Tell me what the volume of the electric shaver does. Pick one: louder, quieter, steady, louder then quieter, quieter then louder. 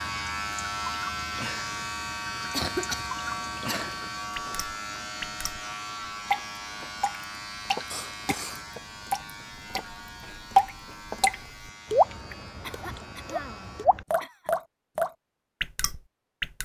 quieter.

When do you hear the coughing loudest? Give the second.
3 s.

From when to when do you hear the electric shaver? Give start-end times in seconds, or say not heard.
0.0-13.8.